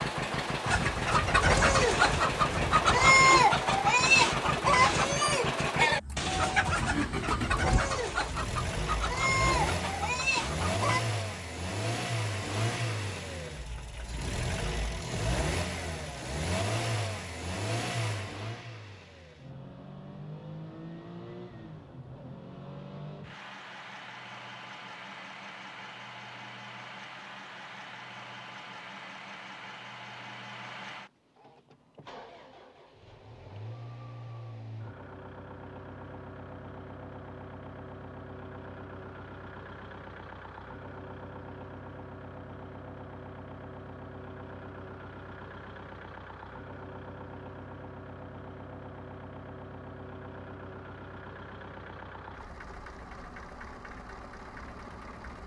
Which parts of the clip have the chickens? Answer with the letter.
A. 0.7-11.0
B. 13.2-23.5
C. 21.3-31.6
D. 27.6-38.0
A.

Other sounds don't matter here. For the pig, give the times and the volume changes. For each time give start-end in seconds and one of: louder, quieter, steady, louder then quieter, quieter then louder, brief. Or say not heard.
not heard.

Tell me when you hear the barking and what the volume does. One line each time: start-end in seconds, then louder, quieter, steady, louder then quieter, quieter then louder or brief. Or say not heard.
not heard.